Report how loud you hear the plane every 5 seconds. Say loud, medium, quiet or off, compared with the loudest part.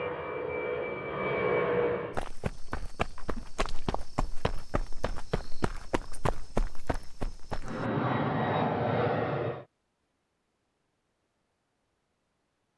loud, loud, off.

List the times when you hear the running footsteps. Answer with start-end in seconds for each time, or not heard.
2.1-7.9.